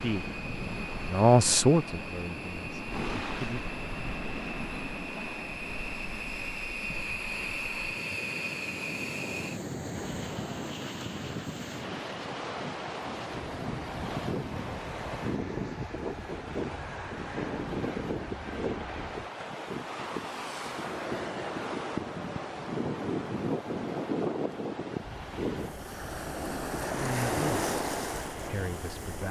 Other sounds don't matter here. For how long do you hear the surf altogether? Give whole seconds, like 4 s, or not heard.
29 s.